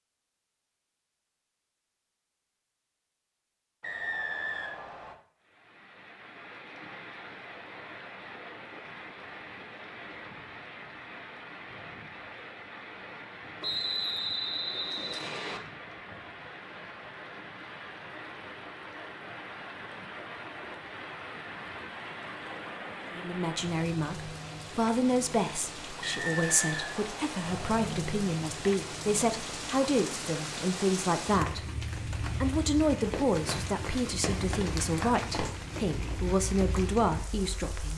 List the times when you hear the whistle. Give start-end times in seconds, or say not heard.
3.8-5.2, 13.6-15.6, 26.0-27.6.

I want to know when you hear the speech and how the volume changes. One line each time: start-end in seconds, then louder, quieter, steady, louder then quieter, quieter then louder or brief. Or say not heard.
23.1-37.9 steady.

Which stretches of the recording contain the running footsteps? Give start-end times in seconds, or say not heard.
33.1-35.5.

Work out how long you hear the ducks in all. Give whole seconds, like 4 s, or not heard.
not heard.